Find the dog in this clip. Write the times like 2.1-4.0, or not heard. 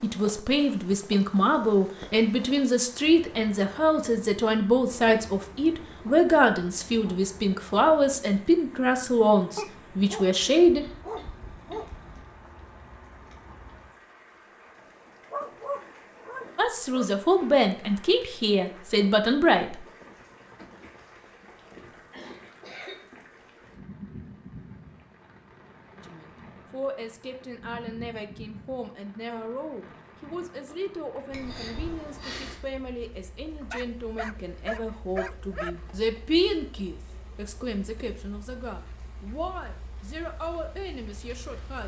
9.6-12.2, 15.3-17.1, 33.7-35.7.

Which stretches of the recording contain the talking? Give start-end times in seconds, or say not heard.
0.0-10.8, 16.6-19.9, 26.0-41.8.